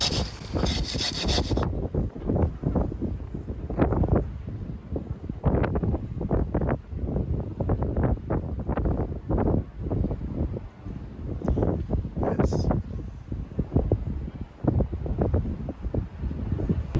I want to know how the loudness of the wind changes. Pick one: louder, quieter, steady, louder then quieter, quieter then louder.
steady.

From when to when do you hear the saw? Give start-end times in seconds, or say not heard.
0.0-1.6.